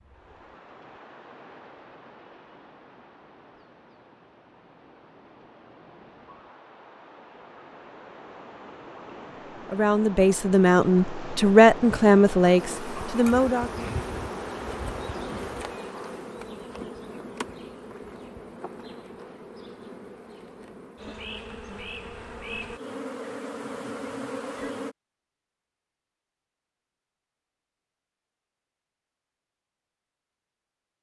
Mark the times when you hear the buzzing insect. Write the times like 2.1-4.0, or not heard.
12.6-24.9.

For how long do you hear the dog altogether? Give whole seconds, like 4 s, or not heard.
not heard.